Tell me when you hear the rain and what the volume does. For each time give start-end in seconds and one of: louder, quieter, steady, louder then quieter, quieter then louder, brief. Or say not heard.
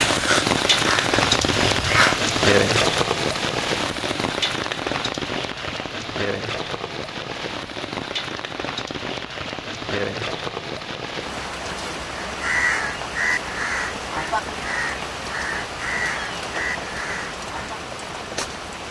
0.0-18.8 quieter.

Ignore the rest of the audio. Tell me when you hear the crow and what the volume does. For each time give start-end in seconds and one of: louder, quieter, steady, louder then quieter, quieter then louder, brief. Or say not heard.
0.0-2.2 brief
12.2-17.8 quieter.